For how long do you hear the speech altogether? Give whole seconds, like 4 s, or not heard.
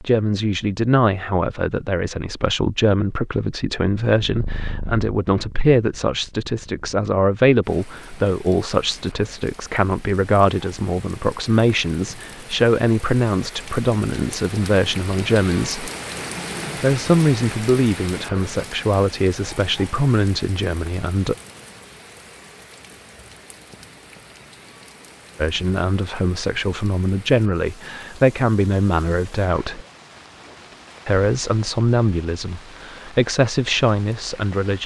29 s.